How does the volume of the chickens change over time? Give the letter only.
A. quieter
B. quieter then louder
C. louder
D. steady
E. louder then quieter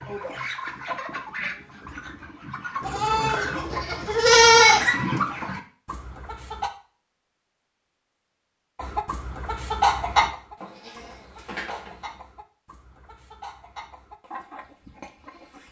E.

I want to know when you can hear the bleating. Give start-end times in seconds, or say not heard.
2.8-4.8, 10.6-11.9.